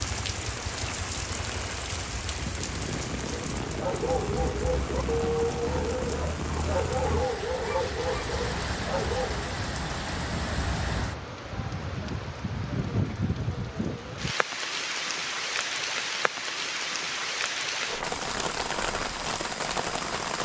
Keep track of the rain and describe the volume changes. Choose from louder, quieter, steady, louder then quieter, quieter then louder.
steady.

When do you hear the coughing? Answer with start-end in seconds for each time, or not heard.
not heard.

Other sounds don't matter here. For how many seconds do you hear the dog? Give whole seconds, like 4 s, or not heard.
6 s.